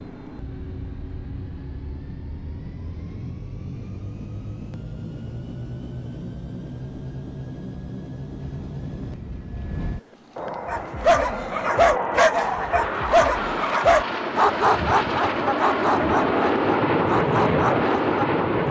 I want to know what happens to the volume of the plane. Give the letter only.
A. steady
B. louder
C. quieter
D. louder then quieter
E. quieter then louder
B.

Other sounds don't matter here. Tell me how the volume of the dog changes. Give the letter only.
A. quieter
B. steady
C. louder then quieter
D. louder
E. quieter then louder
A.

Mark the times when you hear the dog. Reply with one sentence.
You can hear the dog from 10.7 to 18.6 s.